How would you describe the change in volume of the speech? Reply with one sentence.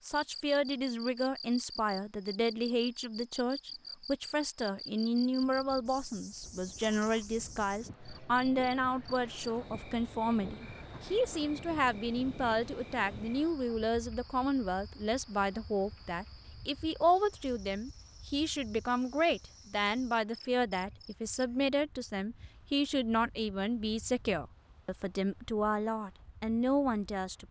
The volume of the speech stays about the same.